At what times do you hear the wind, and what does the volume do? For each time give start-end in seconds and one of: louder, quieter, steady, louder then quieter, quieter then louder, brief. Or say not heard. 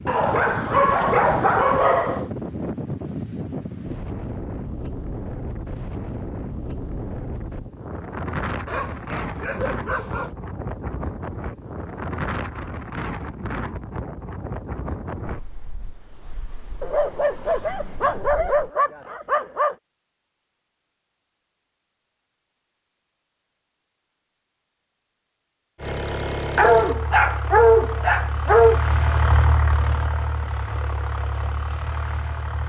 0.0-18.7 quieter.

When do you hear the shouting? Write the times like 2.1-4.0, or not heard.
not heard.